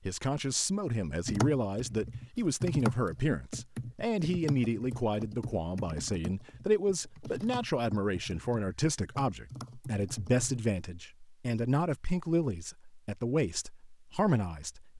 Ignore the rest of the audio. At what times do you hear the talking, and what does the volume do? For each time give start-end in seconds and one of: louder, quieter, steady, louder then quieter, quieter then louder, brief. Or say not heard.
0.1-14.9 steady.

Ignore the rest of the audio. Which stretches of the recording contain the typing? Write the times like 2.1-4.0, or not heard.
1.2-10.7.